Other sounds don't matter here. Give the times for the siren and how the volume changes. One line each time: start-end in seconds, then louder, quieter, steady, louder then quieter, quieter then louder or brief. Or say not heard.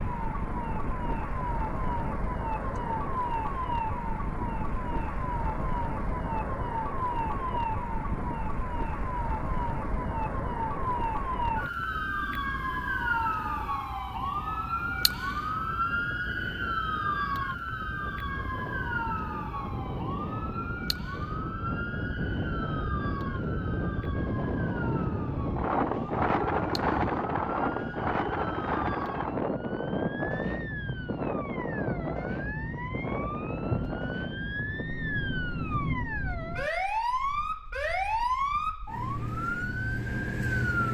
0.0-40.8 quieter then louder.